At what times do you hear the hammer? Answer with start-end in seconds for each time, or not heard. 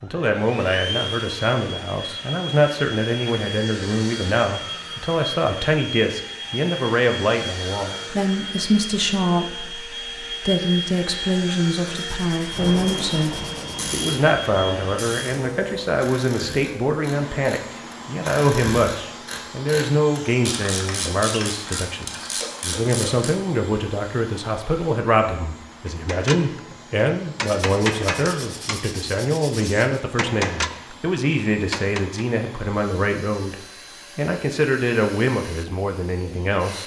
25.9-32.2.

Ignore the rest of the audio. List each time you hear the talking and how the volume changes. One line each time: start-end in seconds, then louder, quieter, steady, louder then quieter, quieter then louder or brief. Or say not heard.
0.0-36.8 steady.